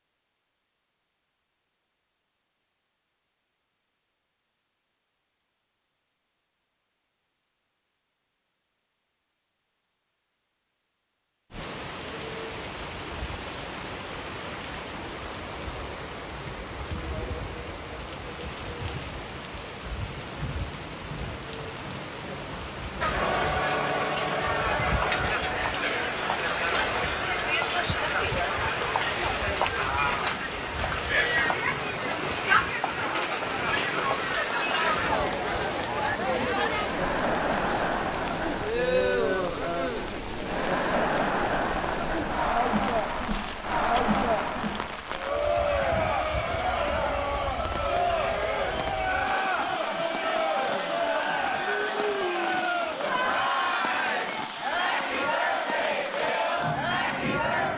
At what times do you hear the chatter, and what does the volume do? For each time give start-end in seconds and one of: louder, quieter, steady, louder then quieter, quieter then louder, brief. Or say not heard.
23.0-57.7 steady.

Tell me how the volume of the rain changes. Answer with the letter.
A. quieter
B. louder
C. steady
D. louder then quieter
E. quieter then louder
C.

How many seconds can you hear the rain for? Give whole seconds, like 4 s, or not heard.
46 s.